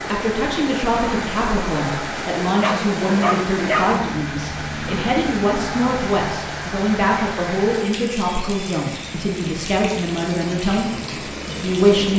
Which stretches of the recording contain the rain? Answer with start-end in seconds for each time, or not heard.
0.0-12.1.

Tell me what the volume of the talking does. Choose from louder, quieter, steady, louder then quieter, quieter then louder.
steady.